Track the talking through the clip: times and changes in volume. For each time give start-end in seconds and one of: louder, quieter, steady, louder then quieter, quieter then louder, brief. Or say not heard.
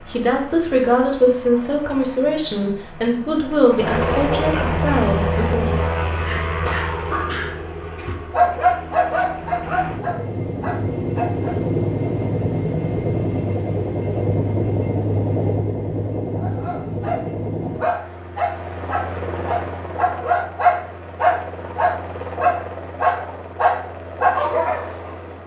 0.0-5.8 quieter.